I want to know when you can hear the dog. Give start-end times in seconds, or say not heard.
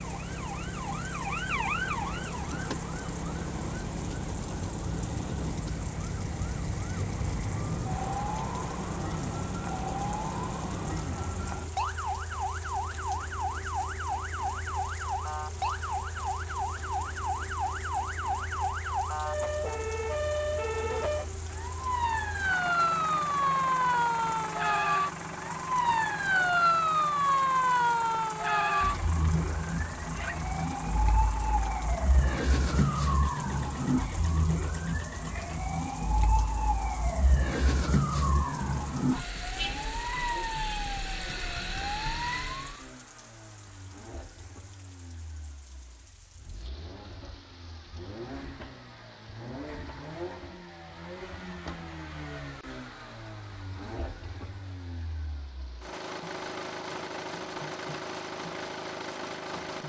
not heard.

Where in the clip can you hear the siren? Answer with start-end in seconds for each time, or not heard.
0.0-42.8.